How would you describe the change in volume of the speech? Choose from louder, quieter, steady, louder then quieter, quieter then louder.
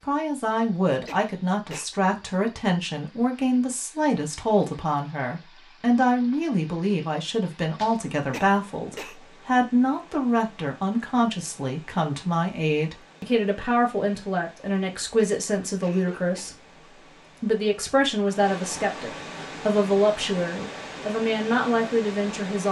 steady.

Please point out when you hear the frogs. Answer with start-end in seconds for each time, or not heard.
not heard.